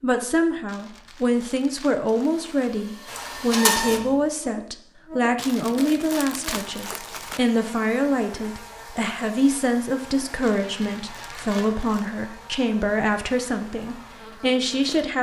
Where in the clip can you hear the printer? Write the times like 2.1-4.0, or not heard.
2.1-4.4.